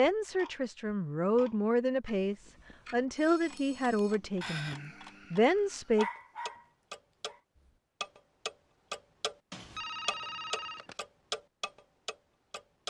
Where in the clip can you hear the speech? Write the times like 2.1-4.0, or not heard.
0.0-6.0.